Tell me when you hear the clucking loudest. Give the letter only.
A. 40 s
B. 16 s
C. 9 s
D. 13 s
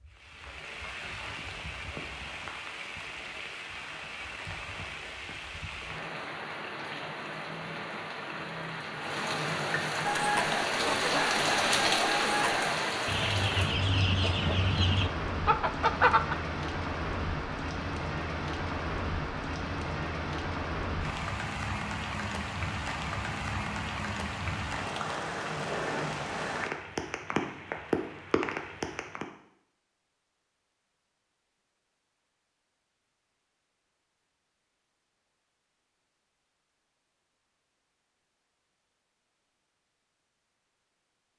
B.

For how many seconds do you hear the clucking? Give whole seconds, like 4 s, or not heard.
6 s.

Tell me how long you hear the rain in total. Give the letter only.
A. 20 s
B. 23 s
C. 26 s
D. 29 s
D.